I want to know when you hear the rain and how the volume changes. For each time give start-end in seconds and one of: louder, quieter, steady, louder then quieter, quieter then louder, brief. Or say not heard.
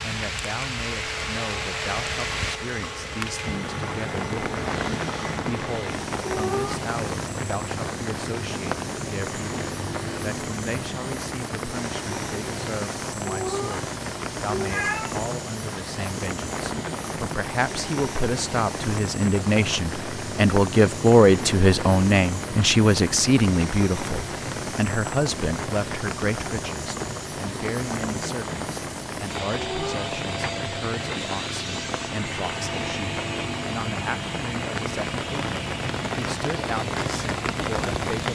0.0-38.3 steady.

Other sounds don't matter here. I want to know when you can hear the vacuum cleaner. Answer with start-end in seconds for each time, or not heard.
0.0-38.3.